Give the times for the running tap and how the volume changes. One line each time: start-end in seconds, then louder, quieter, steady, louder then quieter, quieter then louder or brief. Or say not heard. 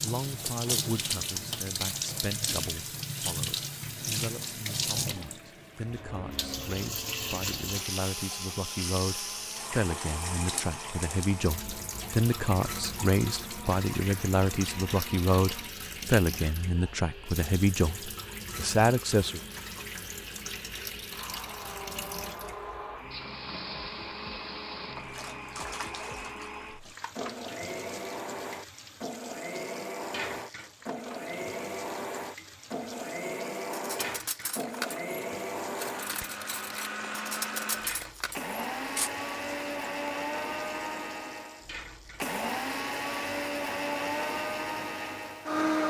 0.0-45.7 quieter.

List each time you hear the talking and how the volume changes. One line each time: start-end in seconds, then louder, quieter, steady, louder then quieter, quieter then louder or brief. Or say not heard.
0.0-19.4 louder.